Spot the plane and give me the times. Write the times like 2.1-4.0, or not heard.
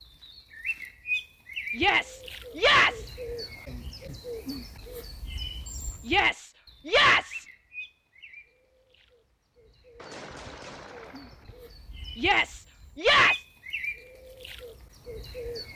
not heard.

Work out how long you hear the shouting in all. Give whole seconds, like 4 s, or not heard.
4 s.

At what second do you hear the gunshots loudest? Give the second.
10 s.